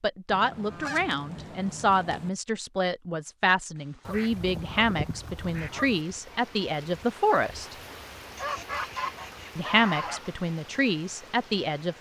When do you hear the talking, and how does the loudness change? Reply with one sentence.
You can hear the talking from 0.0 to 7.8 s, at a steady volume; and briefly from 9.6 to 11.9 s.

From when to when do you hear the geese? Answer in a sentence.
The geese can be heard from 0.3 to 2.3 s, from 4.0 to 6.0 s and from 8.3 to 10.3 s.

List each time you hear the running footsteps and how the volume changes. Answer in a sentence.
You can't hear the running footsteps here.